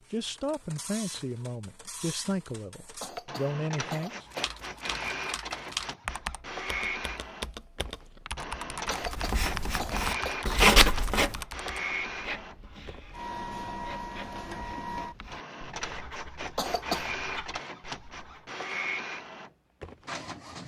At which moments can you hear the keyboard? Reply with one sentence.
The keyboard can be heard from 4.2 to 11.8 s.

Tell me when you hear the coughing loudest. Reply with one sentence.
The volume of the coughing peaks at 17 seconds.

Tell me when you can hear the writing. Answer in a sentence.
You can hear the writing from 9.1 to 18.4 s.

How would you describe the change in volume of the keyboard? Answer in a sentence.
The loudness of the keyboard stays about the same.